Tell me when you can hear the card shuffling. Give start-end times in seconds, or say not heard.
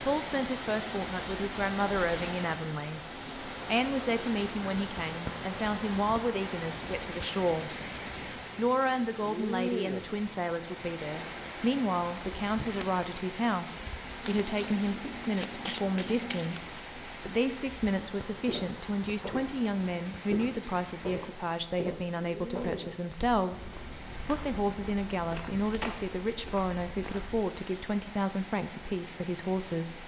14.2-16.6.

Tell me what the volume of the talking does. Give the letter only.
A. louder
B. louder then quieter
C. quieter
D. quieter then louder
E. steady
E.